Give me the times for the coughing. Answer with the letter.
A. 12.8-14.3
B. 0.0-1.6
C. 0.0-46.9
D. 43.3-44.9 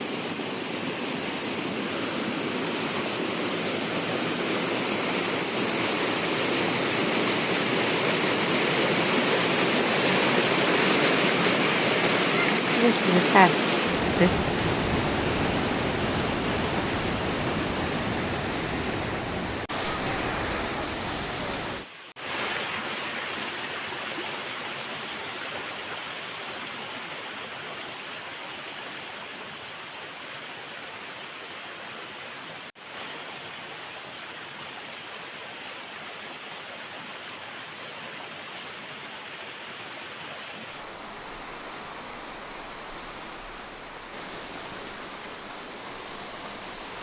A.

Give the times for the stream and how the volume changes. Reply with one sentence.
You can hear the stream from 0.0 to 46.9 s, getting quieter.